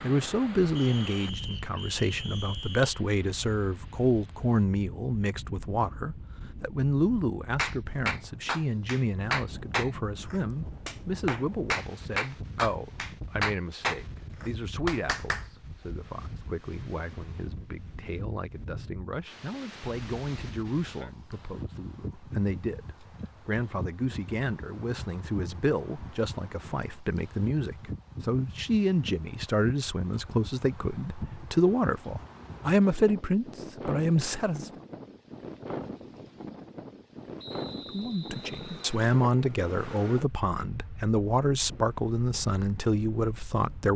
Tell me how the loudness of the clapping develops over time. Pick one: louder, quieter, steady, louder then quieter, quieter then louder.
steady.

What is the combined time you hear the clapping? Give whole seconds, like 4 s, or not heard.
8 s.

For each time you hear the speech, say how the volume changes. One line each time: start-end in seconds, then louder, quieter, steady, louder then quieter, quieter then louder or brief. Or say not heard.
0.0-34.7 quieter then louder
37.9-43.9 steady.